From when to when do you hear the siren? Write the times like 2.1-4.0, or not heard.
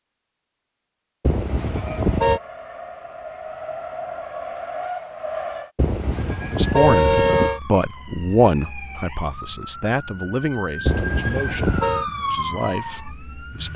6.1-13.7.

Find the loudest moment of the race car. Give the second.
5 s.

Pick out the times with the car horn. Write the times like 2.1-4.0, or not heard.
1.2-2.4, 5.8-7.6, 10.8-12.1.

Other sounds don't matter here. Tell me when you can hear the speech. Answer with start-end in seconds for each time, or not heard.
6.5-13.7.